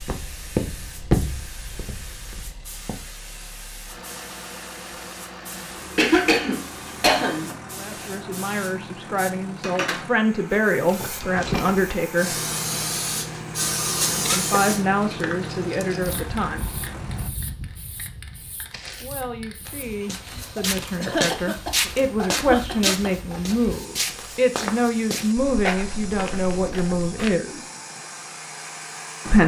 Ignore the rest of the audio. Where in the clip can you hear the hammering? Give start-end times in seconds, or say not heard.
not heard.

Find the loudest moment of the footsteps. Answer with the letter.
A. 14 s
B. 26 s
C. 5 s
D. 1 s
D.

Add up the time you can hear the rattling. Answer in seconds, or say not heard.
2 s.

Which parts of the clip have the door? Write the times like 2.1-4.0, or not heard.
not heard.